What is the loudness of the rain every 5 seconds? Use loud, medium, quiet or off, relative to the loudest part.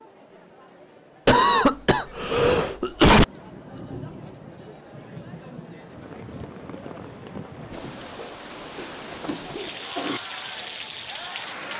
medium, loud, loud.